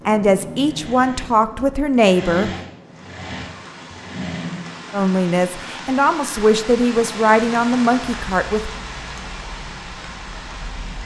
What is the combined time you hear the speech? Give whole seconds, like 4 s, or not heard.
6 s.